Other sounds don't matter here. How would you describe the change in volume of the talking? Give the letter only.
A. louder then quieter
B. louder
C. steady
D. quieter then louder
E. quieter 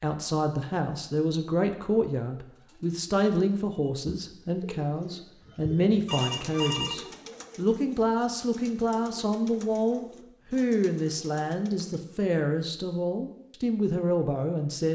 C.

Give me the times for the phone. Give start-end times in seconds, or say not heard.
6.0-7.0.